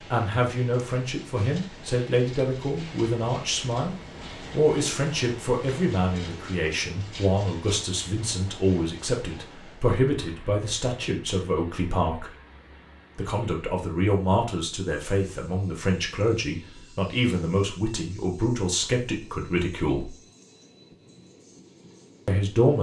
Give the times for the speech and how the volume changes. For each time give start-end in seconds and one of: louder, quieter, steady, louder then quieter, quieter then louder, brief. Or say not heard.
0.1-12.3 steady
13.2-20.1 steady
22.2-22.7 brief.